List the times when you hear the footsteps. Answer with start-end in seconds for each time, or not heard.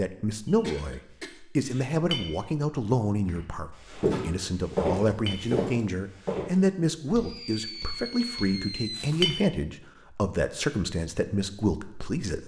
3.2-9.3.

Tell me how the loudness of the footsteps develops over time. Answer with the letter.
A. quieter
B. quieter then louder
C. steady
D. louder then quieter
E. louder
A.